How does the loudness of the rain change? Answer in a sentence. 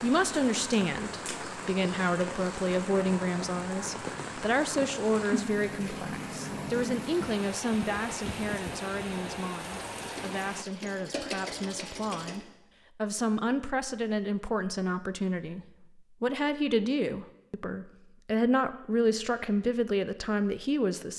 The volume of the rain stays about the same.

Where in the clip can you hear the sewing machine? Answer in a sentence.
You can hear the sewing machine from 10.0 to 12.4 s.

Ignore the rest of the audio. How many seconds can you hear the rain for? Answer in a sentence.
The rain can be heard for 11 seconds in total.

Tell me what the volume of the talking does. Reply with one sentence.
The volume of the talking goes down, then up.